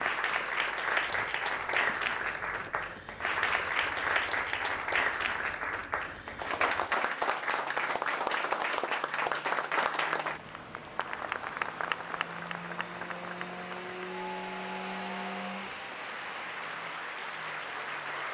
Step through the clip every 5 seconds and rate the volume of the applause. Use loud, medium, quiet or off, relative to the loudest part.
loud, loud, medium, medium.